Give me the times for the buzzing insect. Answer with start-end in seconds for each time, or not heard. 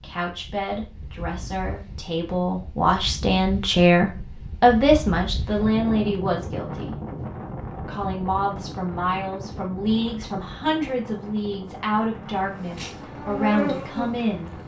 12.5-14.6.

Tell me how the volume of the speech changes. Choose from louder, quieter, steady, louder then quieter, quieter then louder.
louder then quieter.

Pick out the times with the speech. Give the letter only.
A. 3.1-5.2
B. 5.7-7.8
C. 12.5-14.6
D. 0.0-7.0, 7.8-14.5
D.